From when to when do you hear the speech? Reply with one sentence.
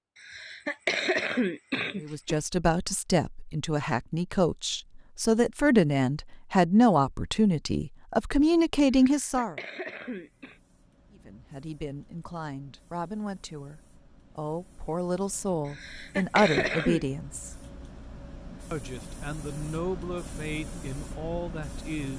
You can hear the speech from 2.0 to 9.6 s, from 11.1 to 17.6 s and from 18.7 to 22.1 s.